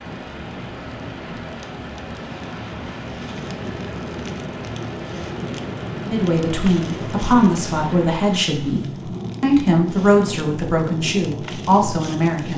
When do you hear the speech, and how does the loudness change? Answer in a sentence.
The speech can be heard from 6.0 to 12.5 s, at a steady volume.